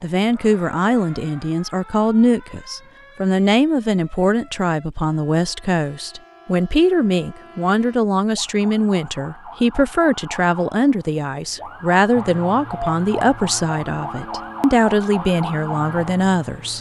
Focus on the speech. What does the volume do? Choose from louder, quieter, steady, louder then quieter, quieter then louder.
steady.